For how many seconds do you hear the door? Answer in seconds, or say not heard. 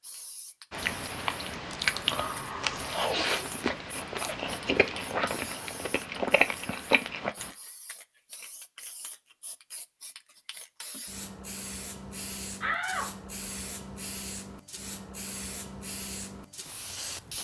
2 s.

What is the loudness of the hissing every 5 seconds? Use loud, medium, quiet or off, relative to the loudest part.
medium, medium, loud, loud.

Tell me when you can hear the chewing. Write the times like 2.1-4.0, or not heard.
0.7-7.5.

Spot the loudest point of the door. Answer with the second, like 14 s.
13 s.